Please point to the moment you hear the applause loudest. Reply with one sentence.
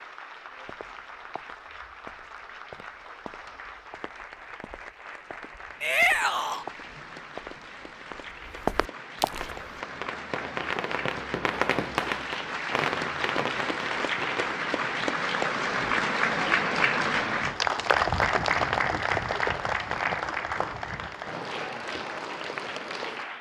The loudest moment of the applause is at 18 seconds.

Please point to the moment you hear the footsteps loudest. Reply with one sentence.
The loudest moment of the footsteps is at 9 seconds.